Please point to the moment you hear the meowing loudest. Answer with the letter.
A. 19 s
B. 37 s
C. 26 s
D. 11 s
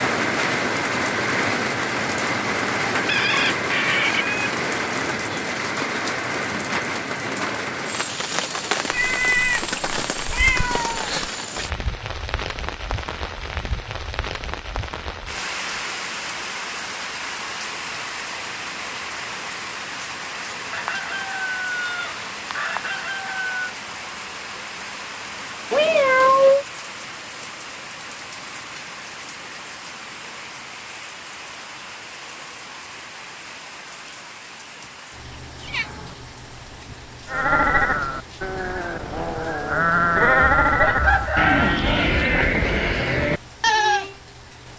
C.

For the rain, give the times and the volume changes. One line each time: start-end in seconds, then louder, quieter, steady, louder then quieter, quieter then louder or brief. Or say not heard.
0.0-44.7 quieter.